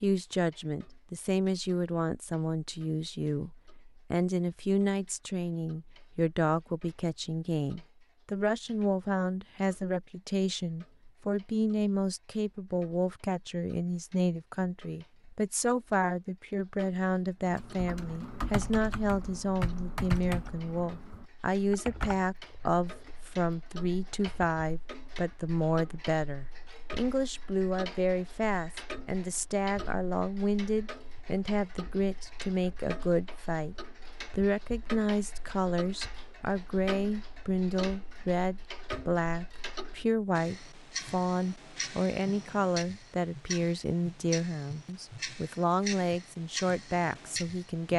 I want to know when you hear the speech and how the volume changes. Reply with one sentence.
You can hear the speech from 0.0 to 47.9 s, at a steady volume.